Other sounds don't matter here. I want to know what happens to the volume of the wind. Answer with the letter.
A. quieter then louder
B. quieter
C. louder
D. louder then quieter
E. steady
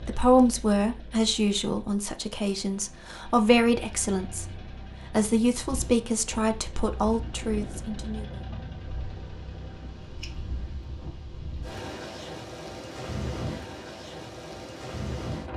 A.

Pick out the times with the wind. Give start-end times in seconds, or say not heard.
5.7-15.5.